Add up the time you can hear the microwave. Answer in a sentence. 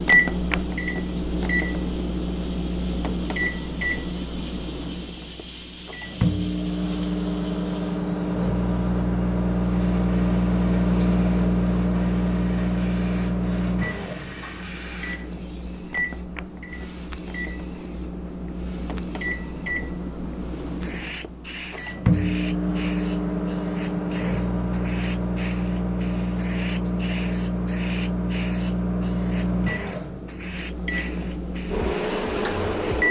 You can hear the microwave for 33 seconds altogether.